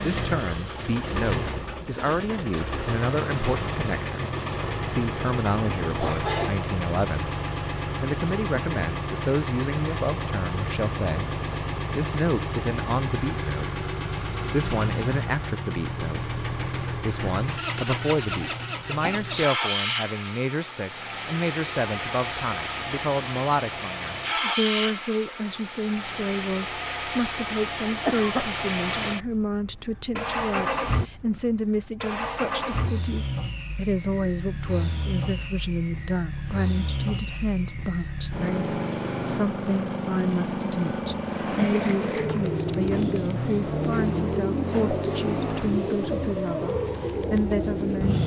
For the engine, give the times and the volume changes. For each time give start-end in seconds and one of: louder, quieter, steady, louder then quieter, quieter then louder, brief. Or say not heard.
0.0-48.2 steady.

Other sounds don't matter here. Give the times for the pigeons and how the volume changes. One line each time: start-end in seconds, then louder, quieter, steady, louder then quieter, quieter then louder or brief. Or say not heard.
41.2-48.2 steady.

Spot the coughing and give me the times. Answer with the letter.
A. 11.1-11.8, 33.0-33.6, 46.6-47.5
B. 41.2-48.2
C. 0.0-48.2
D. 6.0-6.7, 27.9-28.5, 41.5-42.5
D.